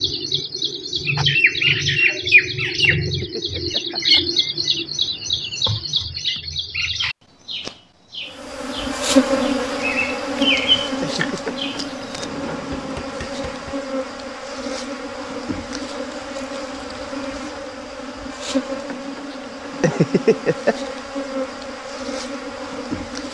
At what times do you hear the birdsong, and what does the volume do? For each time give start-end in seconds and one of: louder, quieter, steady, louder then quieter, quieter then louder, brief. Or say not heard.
0.0-12.2 quieter then louder.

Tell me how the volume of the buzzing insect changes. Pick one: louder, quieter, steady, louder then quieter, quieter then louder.
quieter.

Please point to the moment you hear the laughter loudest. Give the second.
20 s.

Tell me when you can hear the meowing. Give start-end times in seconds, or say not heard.
not heard.